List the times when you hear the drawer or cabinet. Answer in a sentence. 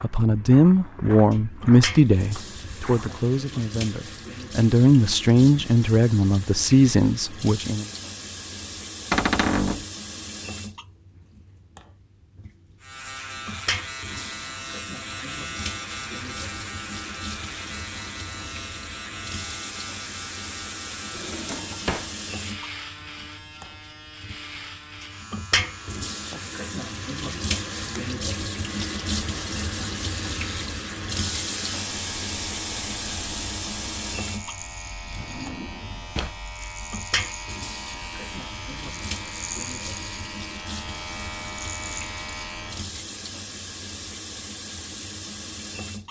You can hear the drawer or cabinet from 9.1 to 9.8 s, from 21.1 to 22.1 s and from 35.0 to 36.4 s.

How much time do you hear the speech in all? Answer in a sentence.
You can hear the speech for 8 seconds altogether.